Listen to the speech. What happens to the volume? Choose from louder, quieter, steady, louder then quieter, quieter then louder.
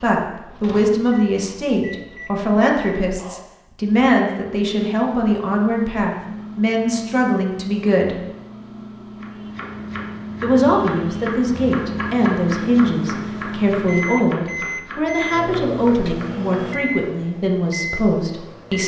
steady.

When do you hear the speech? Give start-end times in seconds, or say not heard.
0.0-8.2, 10.4-18.8.